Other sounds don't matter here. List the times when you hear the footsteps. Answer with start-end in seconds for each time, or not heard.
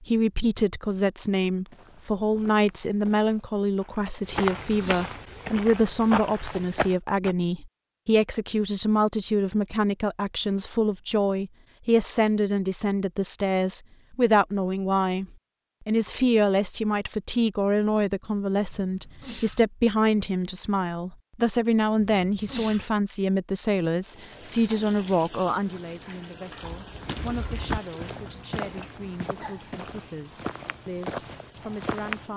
1.6-7.3, 26.6-32.2.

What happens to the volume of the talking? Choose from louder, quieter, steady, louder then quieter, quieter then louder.
quieter.